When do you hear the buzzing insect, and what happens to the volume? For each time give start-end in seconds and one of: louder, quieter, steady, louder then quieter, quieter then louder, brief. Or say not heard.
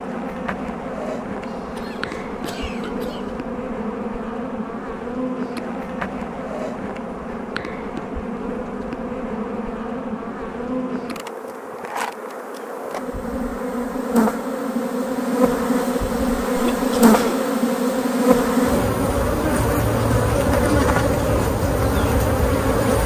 0.0-23.0 louder.